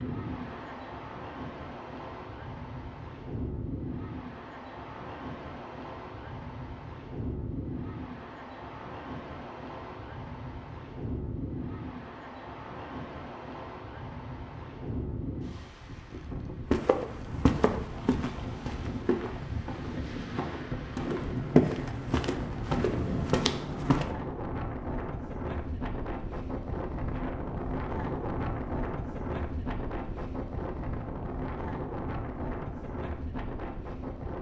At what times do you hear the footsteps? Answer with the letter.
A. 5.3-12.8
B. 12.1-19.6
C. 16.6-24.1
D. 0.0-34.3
C.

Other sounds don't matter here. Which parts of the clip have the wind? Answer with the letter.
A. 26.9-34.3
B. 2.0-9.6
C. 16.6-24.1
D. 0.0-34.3
D.